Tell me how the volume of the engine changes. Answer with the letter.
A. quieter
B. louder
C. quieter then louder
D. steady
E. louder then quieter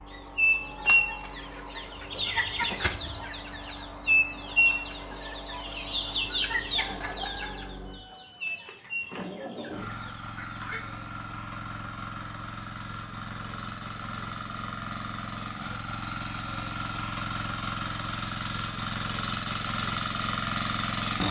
B.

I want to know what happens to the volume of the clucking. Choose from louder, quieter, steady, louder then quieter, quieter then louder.
quieter.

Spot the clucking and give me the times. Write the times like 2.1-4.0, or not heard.
0.3-11.0.